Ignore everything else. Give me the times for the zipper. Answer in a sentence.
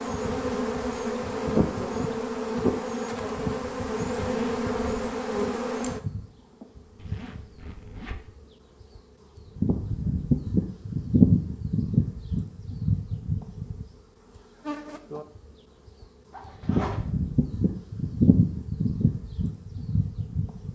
The zipper can be heard from 4.2 to 5.2 s, from 7.0 to 8.2 s and from 16.3 to 17.1 s.